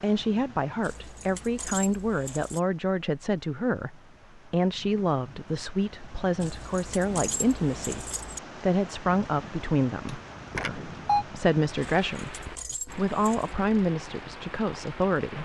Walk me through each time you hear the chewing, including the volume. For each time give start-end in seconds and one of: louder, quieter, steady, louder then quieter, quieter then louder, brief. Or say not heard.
not heard.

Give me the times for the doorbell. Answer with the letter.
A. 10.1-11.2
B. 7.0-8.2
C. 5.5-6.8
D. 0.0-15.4
A.